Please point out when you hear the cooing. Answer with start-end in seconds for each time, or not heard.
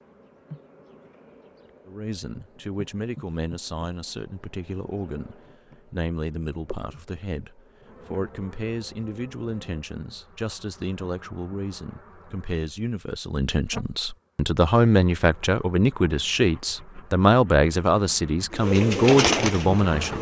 18.5-20.1.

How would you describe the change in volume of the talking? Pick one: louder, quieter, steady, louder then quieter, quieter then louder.
louder.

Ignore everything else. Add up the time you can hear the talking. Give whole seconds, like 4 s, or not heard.
18 s.